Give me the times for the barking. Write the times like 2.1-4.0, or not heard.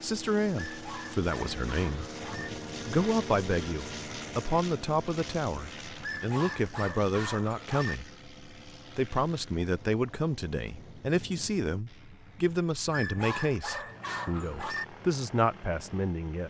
0.6-2.5, 6.0-8.0, 12.9-14.8.